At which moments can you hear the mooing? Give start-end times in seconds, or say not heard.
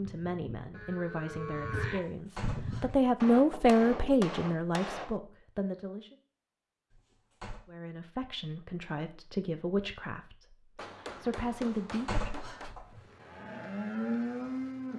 0.0-3.0, 12.9-14.9.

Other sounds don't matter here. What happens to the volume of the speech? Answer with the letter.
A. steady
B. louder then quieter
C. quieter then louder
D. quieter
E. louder
B.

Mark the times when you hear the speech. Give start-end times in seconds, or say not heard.
0.0-6.2, 7.7-12.2.